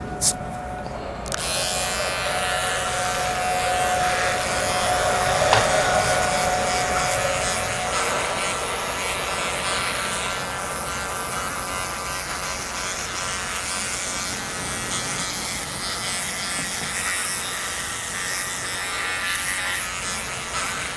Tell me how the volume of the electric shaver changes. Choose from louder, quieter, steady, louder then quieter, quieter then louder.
steady.